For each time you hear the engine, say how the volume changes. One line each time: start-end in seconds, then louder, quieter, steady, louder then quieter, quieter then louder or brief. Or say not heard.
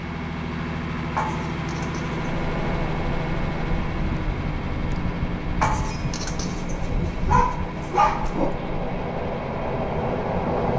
0.0-10.7 quieter.